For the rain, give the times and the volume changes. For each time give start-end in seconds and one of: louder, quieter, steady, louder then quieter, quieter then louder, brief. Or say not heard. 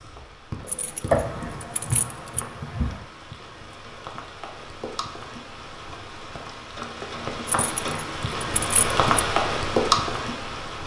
0.0-10.8 louder.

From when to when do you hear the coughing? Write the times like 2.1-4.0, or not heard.
1.1-3.0.